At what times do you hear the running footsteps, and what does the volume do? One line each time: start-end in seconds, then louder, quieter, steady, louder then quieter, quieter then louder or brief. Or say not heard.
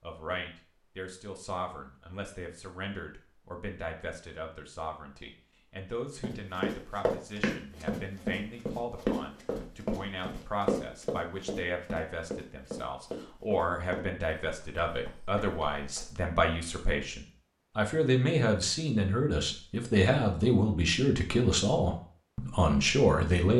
6.2-16.3 quieter.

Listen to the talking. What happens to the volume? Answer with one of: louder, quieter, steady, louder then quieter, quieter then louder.
louder.